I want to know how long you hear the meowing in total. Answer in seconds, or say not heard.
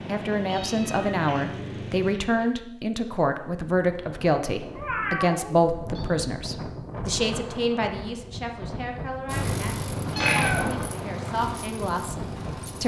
4 s.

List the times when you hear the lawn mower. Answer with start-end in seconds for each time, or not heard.
0.0-2.1, 9.2-12.8.